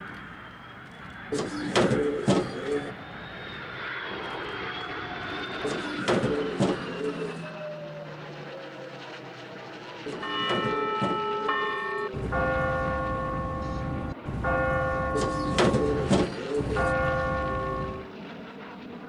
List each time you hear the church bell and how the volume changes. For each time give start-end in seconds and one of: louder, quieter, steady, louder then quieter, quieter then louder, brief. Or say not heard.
10.2-18.1 steady.